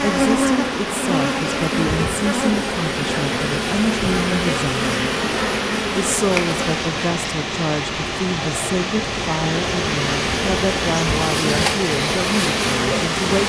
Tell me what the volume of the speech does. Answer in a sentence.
The loudness of the speech stays about the same.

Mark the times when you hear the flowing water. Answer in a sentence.
You can hear the flowing water from 0.0 to 13.4 s.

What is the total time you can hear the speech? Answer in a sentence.
The speech can be heard for 13 seconds in total.